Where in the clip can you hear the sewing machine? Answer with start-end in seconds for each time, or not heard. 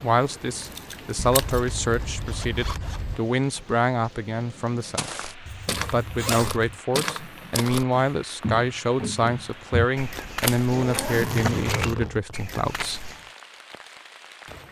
not heard.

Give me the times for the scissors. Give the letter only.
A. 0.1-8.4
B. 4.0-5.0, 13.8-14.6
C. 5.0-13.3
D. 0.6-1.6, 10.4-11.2
D.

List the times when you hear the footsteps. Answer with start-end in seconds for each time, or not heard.
5.0-13.3.